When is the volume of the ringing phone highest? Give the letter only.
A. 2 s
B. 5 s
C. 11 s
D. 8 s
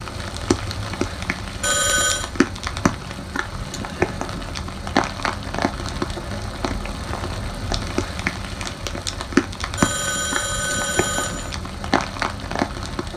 A.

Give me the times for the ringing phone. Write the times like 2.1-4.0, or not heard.
1.6-2.3, 9.8-11.6.